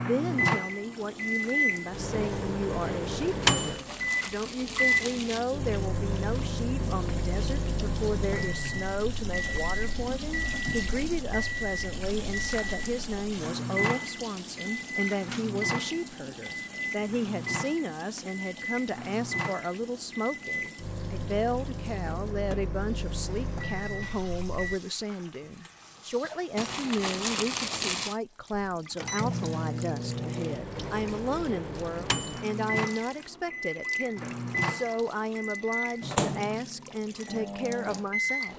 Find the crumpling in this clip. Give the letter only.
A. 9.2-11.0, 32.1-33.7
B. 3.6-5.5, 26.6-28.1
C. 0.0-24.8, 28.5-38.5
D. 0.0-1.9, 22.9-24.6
B.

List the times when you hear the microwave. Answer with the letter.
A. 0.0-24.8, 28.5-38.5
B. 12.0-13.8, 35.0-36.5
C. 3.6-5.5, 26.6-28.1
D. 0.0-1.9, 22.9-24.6
A.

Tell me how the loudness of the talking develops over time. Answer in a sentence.
The loudness of the talking stays about the same.